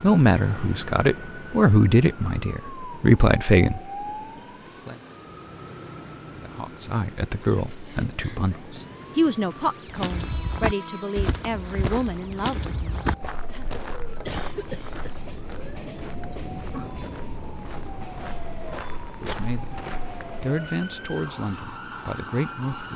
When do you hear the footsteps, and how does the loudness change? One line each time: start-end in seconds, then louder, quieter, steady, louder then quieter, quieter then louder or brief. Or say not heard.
9.8-20.2 quieter then louder.